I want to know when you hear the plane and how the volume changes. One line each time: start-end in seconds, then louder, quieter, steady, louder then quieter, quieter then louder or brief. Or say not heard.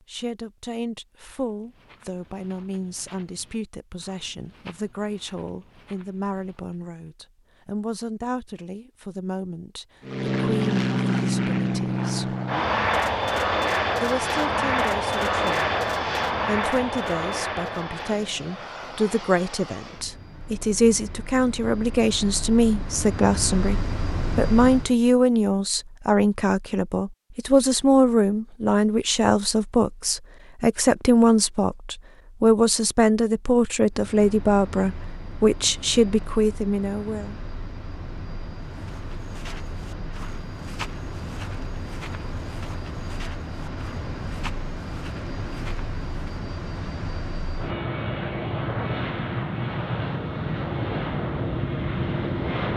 10.0-24.9 quieter then louder
33.9-52.7 louder.